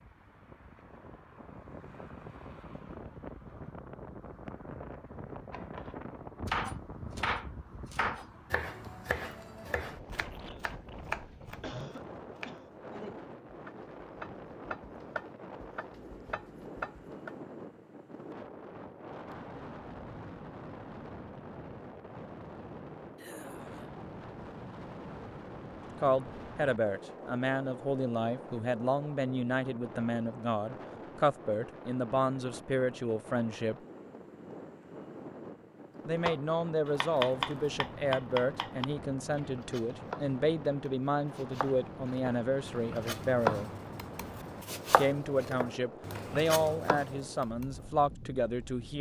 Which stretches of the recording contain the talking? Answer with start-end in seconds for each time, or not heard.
26.0-33.8, 36.0-43.7, 45.0-48.9.